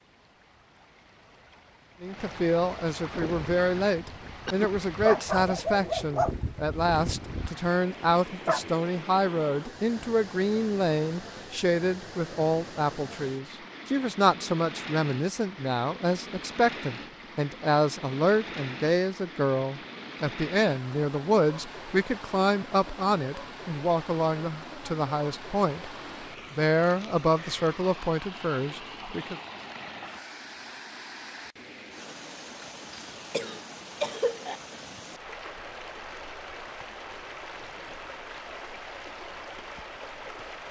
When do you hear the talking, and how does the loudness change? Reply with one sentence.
You can hear the talking from 2.0 to 25.9 s, at a steady volume; and briefly from 26.5 to 29.4 s.